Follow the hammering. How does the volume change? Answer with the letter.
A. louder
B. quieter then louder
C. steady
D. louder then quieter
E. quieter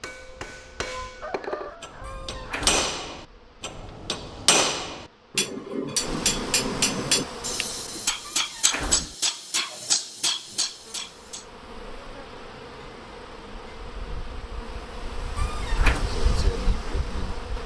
A.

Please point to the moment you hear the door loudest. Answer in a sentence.
The volume of the door peaks at 16 seconds.